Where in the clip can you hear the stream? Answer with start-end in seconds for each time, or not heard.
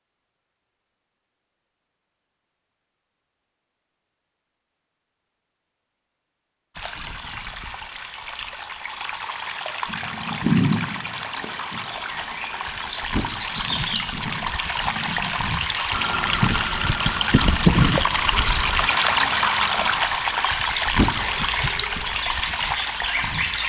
6.8-23.6.